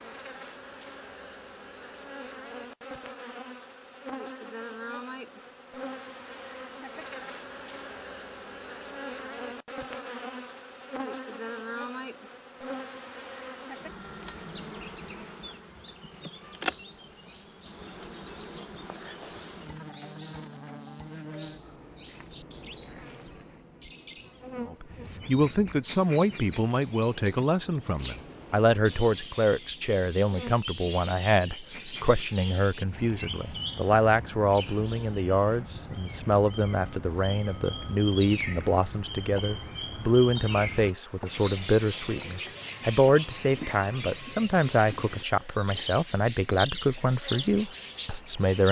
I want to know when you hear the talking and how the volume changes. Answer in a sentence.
You can hear the talking from 24.6 to 48.6 s, at a steady volume.